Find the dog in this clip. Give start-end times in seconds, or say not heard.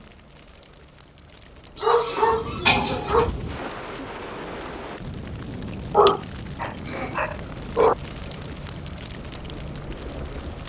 1.8-3.3, 5.9-8.0.